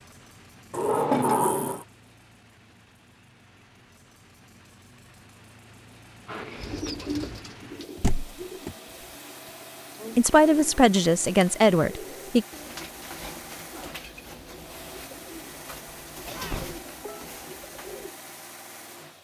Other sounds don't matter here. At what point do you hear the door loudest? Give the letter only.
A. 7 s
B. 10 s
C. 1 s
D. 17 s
C.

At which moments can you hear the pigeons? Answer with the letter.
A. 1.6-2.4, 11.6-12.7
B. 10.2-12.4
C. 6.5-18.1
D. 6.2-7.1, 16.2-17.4
C.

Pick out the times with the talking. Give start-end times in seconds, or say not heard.
10.2-12.4.